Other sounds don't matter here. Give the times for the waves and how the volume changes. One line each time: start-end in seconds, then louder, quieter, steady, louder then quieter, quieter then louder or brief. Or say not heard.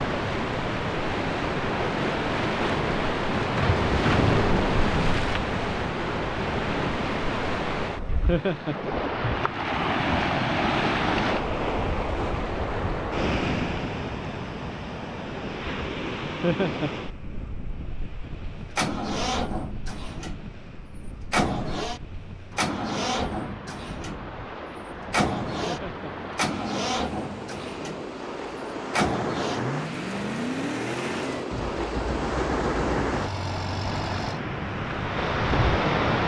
0.0-36.2 quieter then louder.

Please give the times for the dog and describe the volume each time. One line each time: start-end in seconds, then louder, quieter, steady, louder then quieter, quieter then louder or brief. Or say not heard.
not heard.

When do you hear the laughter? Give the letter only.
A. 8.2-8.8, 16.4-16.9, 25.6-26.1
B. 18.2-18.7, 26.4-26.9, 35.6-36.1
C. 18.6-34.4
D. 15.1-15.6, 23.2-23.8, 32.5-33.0
A.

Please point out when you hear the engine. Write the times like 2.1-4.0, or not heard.
18.6-34.4.